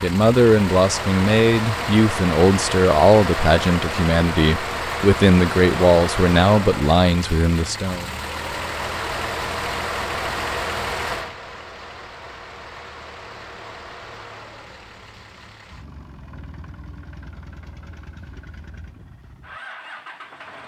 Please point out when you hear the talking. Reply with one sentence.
You can hear the talking from 0.0 to 8.1 s.